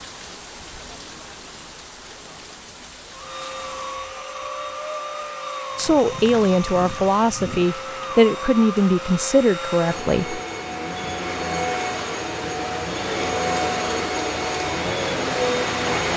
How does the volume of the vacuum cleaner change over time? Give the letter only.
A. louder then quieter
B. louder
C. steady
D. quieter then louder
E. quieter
B.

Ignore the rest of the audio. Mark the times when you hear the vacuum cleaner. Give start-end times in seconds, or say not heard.
3.1-16.1.